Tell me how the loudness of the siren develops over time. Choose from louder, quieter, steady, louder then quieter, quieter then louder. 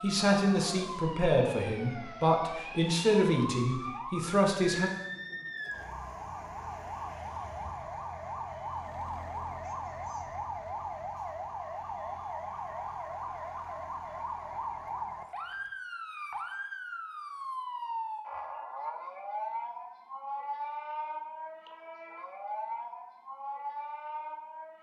steady.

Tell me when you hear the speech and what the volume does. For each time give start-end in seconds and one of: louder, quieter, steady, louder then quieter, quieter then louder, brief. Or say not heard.
0.0-4.9 steady.